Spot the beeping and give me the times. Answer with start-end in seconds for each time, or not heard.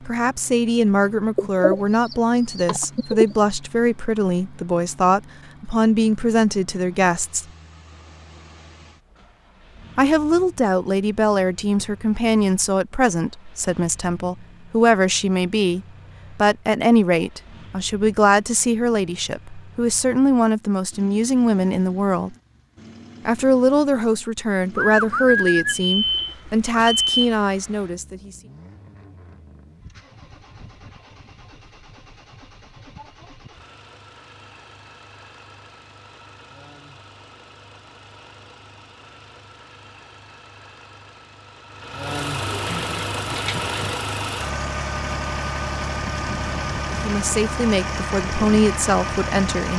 25.6-27.2.